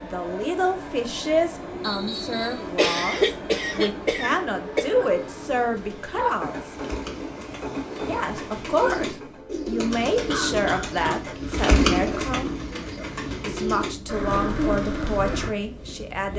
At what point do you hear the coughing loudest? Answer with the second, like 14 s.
3 s.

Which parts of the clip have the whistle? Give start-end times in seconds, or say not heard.
1.8-2.6.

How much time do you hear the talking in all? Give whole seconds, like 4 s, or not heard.
14 s.